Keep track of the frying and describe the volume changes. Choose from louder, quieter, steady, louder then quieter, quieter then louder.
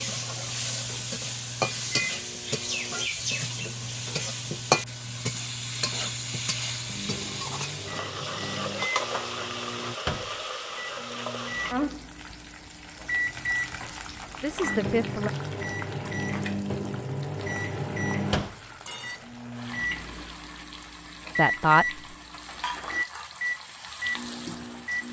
quieter.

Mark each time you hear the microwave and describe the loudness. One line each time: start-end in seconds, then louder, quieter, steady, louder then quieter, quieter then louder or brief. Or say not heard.
0.0-25.0 louder.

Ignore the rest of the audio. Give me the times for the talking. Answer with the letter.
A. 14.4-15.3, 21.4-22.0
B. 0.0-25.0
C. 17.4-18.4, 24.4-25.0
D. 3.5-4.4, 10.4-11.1
A.